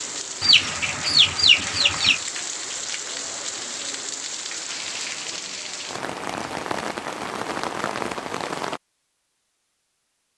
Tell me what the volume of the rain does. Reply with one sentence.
The volume of the rain stays about the same.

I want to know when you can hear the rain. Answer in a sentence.
The rain can be heard from 0.0 to 8.8 s.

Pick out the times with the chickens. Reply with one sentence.
The chickens can be heard from 0.4 to 2.2 s.